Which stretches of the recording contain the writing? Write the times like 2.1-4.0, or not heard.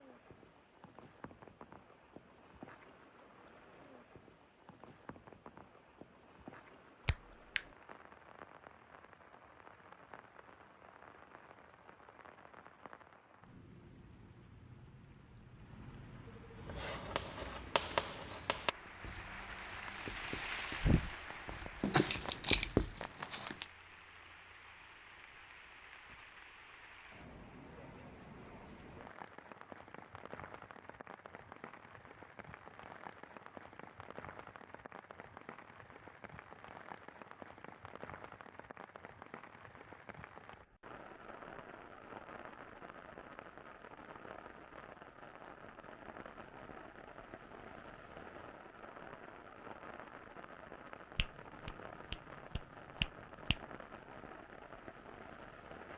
16.6-23.0.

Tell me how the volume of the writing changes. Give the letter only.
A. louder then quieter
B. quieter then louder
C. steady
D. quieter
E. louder
B.